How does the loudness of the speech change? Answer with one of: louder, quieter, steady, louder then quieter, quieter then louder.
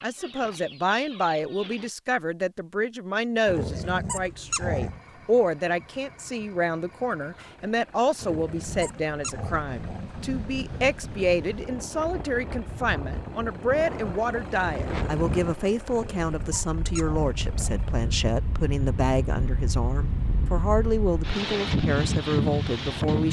steady.